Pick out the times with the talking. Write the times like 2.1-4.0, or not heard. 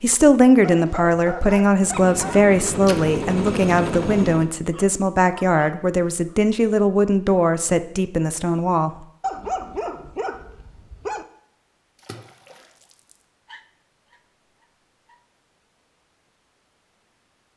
0.0-9.1.